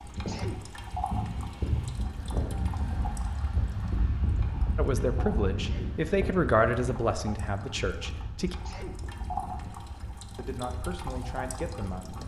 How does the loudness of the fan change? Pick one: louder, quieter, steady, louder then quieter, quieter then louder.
quieter.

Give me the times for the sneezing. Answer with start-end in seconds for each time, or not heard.
0.2-0.7, 5.6-6.0, 8.7-9.1.